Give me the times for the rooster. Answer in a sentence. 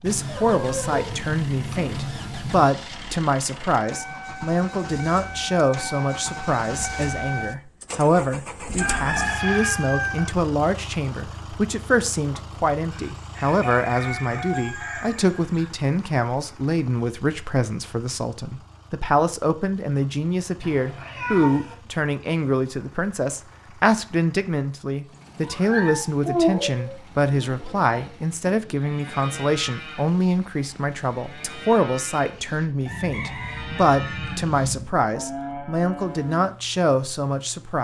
The rooster can be heard from 8.8 to 10.3 s, from 12.9 to 15.7 s and from 32.9 to 34.9 s.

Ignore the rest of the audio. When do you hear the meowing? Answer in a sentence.
The meowing can be heard from 0.1 to 2.7 s, from 20.6 to 21.8 s and from 25.4 to 26.9 s.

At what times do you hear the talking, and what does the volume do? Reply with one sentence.
You can hear the talking from 0.0 to 37.7 s, at a steady volume.